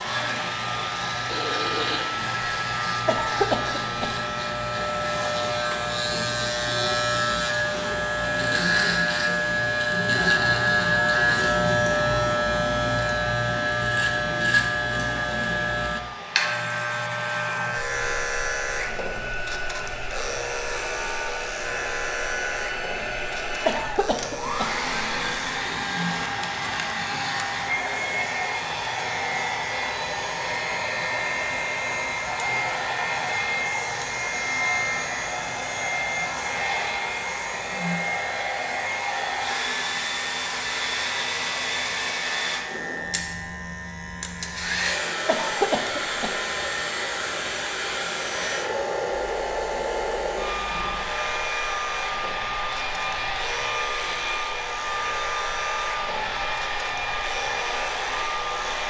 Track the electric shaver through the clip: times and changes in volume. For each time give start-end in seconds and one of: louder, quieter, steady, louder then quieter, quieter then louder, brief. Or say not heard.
0.0-58.8 quieter.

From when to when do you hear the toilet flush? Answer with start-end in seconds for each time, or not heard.
1.2-2.0.